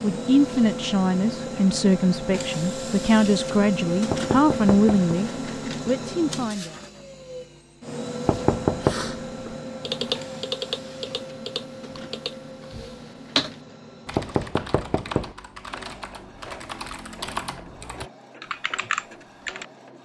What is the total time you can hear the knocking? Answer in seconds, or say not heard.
3 s.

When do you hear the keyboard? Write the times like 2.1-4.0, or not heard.
8.8-19.6.